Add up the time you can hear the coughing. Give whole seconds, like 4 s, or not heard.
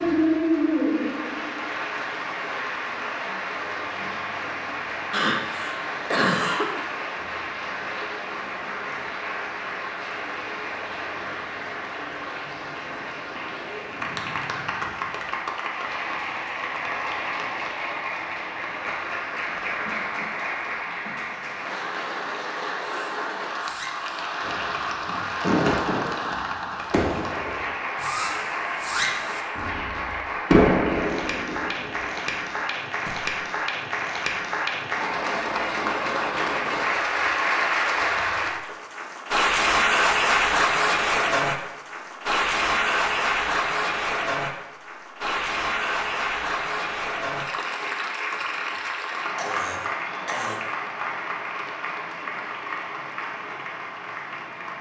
4 s.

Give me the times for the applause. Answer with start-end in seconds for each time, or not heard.
0.0-54.7.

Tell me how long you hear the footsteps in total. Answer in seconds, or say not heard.
not heard.